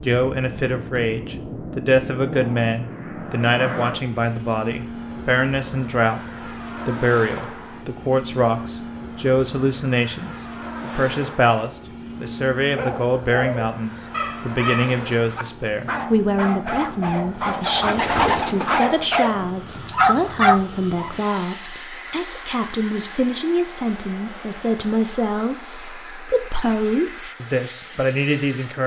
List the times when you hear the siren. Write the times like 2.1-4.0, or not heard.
not heard.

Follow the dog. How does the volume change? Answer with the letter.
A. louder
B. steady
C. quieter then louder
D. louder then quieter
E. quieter
A.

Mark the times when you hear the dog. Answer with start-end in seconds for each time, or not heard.
12.8-21.3.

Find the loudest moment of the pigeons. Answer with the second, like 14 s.
18 s.